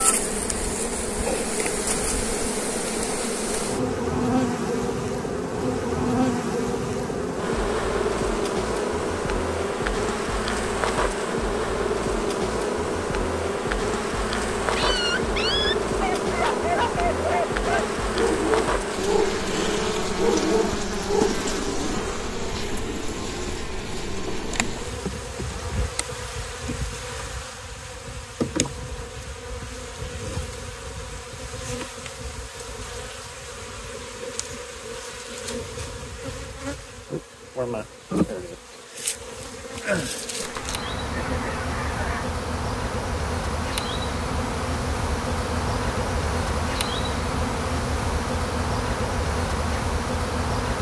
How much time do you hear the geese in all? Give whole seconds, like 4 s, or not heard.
2 s.